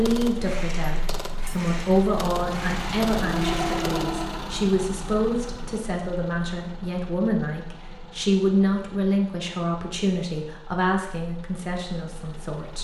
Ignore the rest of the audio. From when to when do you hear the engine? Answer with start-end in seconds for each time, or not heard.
0.1-12.7.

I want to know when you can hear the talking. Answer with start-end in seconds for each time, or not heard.
0.0-12.7.